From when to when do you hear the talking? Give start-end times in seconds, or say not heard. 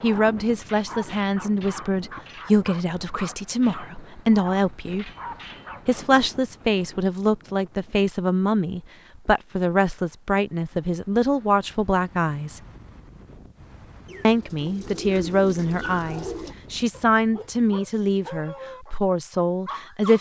0.0-5.1, 5.8-12.6, 14.2-20.1.